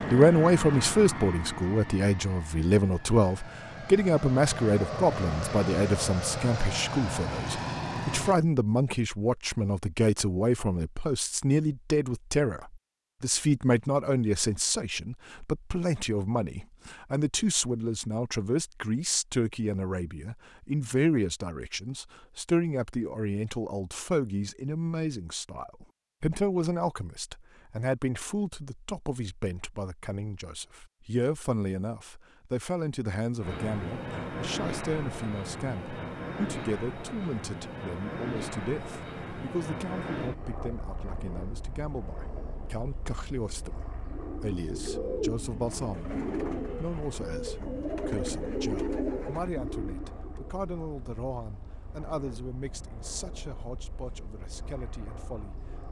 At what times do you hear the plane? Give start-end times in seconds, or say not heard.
0.0-8.4, 33.4-55.8.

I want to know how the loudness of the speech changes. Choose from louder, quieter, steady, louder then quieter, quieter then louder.
quieter.